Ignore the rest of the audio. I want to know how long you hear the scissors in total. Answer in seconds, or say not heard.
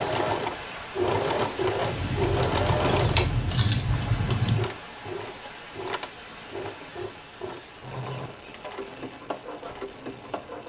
3 s.